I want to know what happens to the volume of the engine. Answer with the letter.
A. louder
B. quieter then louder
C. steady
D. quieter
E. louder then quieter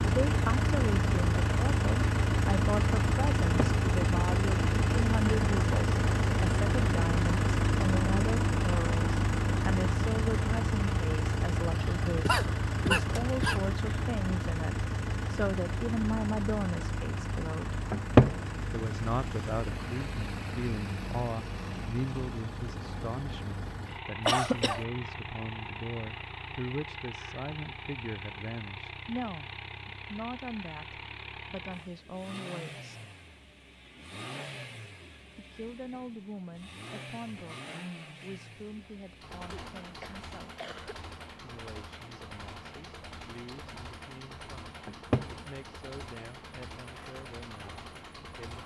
D.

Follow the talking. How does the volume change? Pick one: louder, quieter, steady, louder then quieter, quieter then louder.
quieter.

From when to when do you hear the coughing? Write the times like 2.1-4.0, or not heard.
12.1-13.6, 24.2-24.9, 39.5-41.0.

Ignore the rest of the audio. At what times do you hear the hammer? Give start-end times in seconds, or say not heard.
not heard.